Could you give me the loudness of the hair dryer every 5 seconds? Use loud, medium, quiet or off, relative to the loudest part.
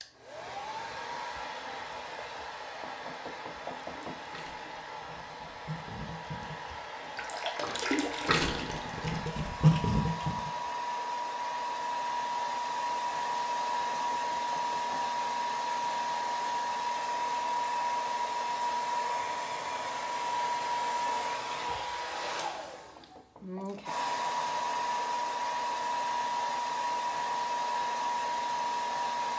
medium, medium, loud, loud, loud, loud.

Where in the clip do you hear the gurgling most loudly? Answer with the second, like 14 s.
10 s.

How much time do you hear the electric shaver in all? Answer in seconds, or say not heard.
not heard.